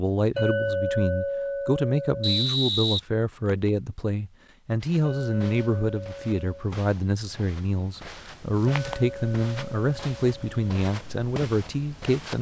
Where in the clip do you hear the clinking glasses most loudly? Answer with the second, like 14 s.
1 s.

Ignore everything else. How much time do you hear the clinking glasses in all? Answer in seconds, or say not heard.
6 s.